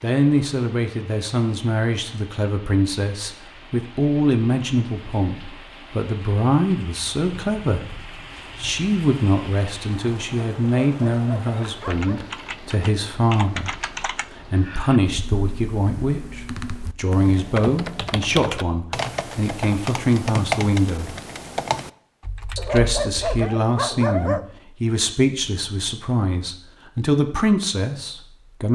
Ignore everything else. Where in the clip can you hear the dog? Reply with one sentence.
You can hear the dog from 10.8 to 12.2 s and from 22.6 to 24.4 s.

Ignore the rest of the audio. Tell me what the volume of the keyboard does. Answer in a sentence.
The loudness of the keyboard goes down, then up.